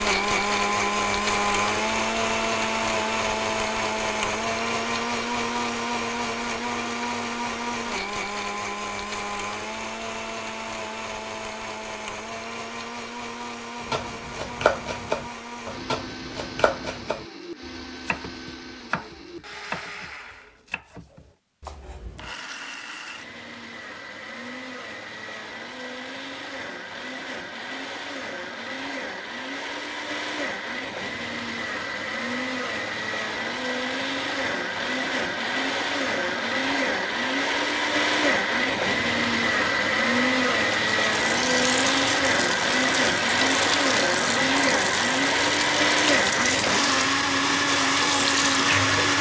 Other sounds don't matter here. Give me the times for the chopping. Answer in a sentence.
The chopping can be heard from 13.8 to 22.3 s.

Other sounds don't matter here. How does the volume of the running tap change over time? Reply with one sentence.
The volume of the running tap stays about the same.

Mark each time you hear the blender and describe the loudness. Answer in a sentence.
You can hear the blender from 0.0 to 49.1 s, getting quieter then louder.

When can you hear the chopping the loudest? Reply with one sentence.
The volume of the chopping peaks at 15 seconds.